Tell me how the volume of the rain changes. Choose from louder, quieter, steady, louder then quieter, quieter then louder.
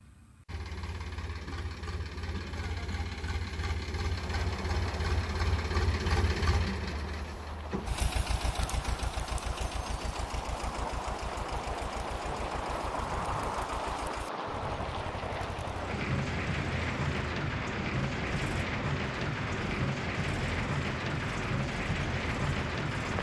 louder.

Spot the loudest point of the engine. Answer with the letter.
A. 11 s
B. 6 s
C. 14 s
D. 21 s
B.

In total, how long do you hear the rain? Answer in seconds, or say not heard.
19 s.